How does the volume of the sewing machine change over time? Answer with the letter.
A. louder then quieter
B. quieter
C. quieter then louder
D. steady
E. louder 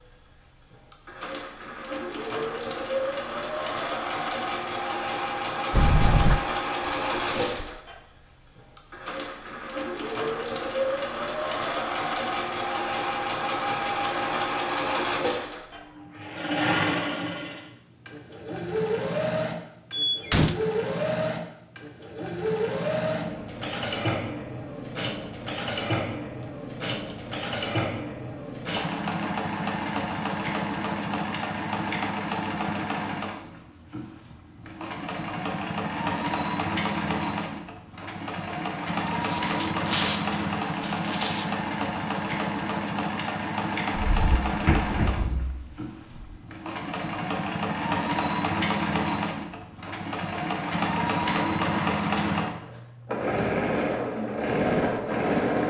D.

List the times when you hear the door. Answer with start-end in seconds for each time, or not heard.
5.7-6.4, 19.9-20.6, 44.0-46.4.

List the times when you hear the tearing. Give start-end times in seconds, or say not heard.
6.8-7.7, 26.4-27.5, 39.0-41.5.